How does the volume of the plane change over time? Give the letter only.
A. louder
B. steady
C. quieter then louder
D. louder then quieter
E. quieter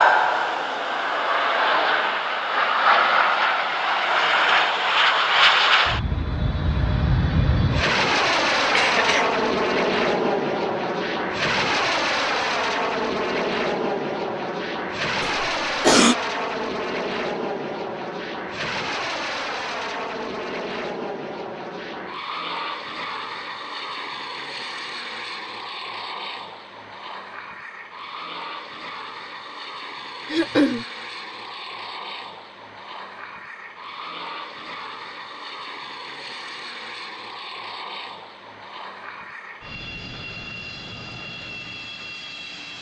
E.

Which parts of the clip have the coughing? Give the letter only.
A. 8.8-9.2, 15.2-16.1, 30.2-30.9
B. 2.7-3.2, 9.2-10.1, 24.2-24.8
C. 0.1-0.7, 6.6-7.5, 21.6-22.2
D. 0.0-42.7
A.